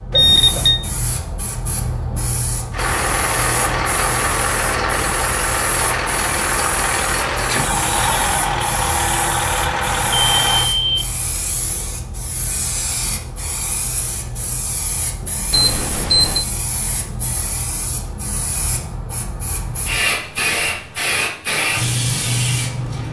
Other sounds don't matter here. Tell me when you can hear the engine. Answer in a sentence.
The engine can be heard from 2.7 to 10.7 s.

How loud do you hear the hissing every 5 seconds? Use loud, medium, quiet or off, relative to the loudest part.
medium, medium, medium, medium, loud.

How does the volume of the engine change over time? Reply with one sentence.
The loudness of the engine stays about the same.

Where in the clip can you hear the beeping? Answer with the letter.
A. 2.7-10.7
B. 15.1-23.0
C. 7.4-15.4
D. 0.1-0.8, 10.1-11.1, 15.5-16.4
D.